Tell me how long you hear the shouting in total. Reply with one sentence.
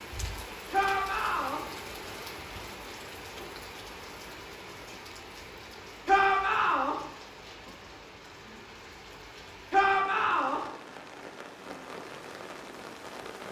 The shouting can be heard for 3 seconds in total.